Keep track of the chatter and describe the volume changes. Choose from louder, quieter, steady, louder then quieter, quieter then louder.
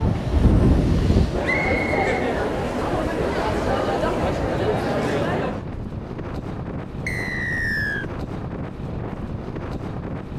louder.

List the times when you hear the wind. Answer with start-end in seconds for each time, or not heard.
0.0-10.3.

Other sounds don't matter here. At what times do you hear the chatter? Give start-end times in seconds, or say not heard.
0.0-5.7.